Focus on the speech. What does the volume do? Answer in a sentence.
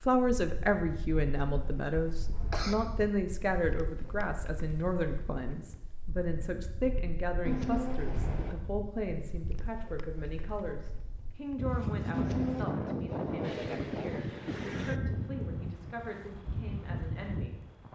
The loudness of the speech goes down.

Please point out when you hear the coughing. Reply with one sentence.
The coughing can be heard from 1.4 to 2.8 s, from 7.5 to 8.6 s and from 12.1 to 12.8 s.